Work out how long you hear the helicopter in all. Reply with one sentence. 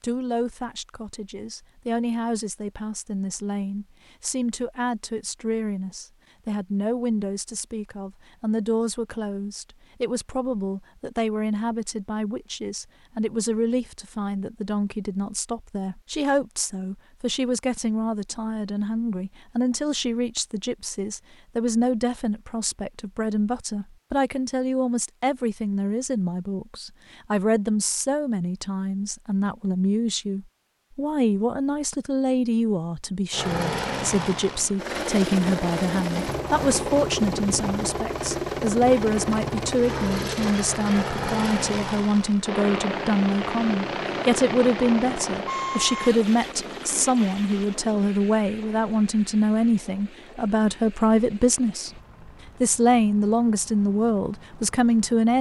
You can hear the helicopter for 22 seconds altogether.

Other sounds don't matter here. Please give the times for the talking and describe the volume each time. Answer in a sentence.
You can hear the talking from 0.0 to 51.9 s, getting louder; and briefly from 52.6 to 55.3 s.